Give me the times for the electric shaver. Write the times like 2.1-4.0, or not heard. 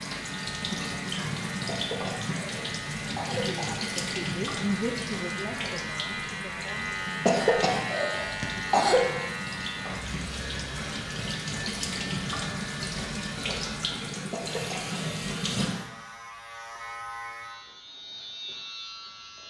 0.0-19.4.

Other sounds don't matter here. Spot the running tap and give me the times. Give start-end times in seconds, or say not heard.
0.0-15.9.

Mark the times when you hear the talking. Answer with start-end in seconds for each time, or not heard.
3.3-6.9.